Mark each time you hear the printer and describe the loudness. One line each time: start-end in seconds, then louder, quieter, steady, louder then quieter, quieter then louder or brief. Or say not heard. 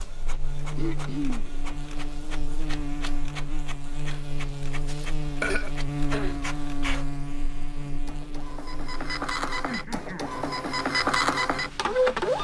0.0-12.3 louder.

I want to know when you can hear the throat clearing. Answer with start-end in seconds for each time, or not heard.
0.8-1.4, 4.8-6.4, 9.7-10.3.